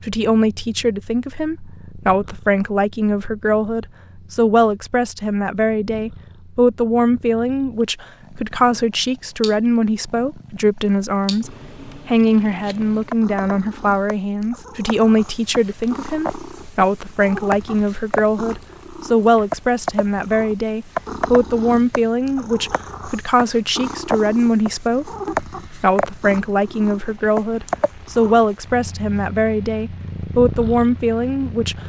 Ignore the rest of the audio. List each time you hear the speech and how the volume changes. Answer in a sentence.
You can hear the speech from 0.0 to 31.8 s, at a steady volume.